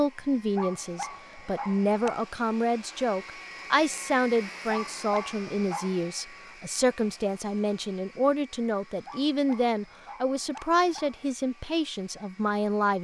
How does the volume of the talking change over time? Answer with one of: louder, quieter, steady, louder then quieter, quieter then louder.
steady.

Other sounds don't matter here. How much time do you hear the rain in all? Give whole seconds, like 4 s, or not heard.
not heard.